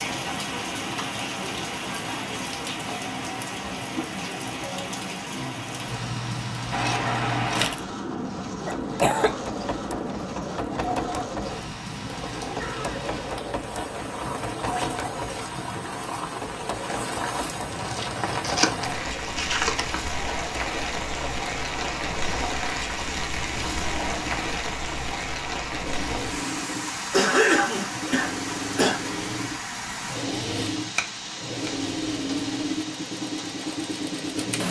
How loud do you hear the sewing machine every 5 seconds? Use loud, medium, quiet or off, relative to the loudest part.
off, loud, loud, medium, medium, loud, loud.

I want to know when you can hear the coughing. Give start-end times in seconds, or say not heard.
8.7-9.3, 27.1-29.0.